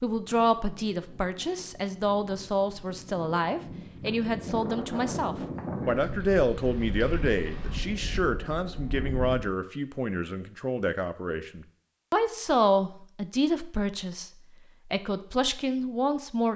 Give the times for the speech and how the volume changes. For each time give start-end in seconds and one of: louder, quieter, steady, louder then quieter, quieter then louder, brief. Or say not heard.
0.0-16.5 steady.